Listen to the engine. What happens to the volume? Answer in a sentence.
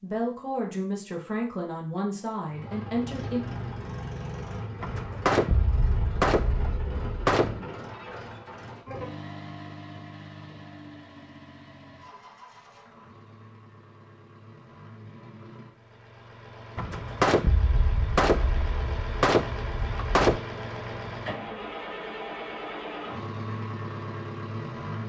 The volume of the engine goes down, then up.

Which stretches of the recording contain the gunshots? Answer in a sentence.
The gunshots can be heard from 4.8 to 7.6 s and from 16.8 to 20.4 s.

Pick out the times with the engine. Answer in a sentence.
You can hear the engine from 2.5 to 25.0 s.